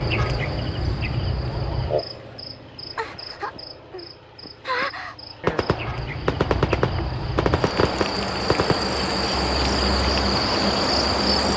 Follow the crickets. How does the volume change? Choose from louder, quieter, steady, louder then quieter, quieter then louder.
quieter then louder.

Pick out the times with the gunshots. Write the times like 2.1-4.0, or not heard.
5.4-8.8.